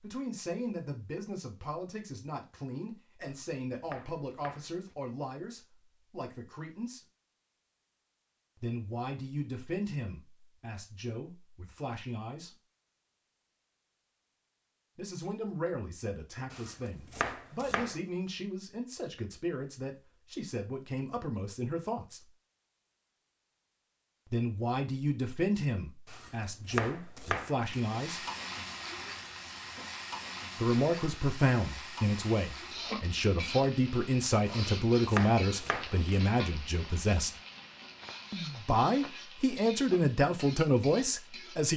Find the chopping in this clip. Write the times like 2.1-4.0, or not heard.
3.2-5.0, 16.5-18.0, 26.1-27.8, 34.5-36.2.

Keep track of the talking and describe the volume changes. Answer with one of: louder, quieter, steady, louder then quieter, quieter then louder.
louder.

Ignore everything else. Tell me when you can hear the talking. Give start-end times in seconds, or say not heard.
0.0-7.0, 8.6-12.6, 14.9-22.3, 24.3-28.2, 30.6-37.3, 38.3-41.7.